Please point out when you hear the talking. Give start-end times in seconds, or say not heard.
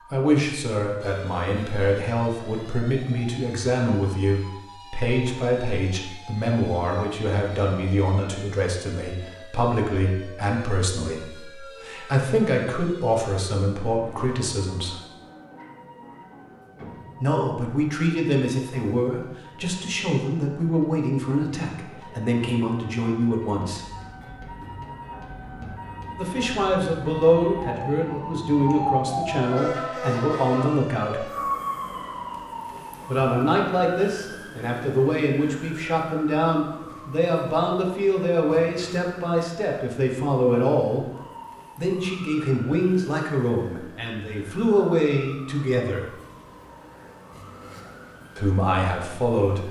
0.1-15.0, 17.2-23.9, 26.1-31.3, 33.0-41.0, 41.8-46.1, 48.4-49.6.